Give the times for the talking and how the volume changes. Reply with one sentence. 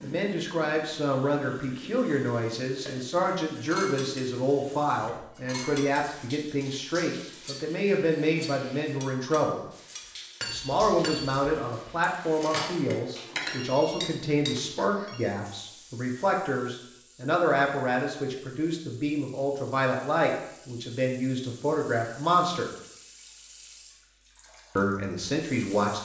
The talking can be heard from 0.0 to 9.6 s, at a steady volume; from 10.5 to 22.7 s, at a steady volume; and briefly from 24.8 to 26.0 s.